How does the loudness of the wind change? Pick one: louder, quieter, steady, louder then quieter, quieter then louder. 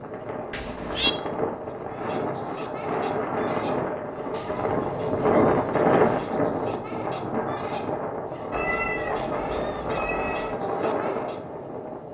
louder then quieter.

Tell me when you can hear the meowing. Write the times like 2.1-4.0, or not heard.
0.5-1.1, 4.3-6.4, 8.5-10.6.